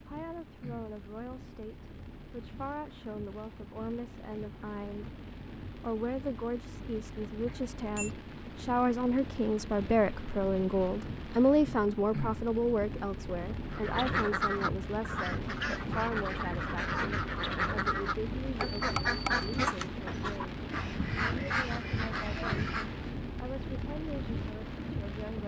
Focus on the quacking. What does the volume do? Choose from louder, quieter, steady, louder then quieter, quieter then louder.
steady.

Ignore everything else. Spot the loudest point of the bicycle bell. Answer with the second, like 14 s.
19 s.